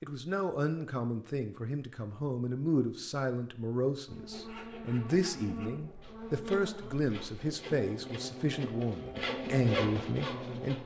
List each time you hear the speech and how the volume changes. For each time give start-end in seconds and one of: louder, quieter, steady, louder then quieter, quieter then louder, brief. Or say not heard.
0.0-10.8 steady.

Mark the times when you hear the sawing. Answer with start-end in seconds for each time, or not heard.
4.1-10.8.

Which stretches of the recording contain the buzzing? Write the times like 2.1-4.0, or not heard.
4.0-10.8.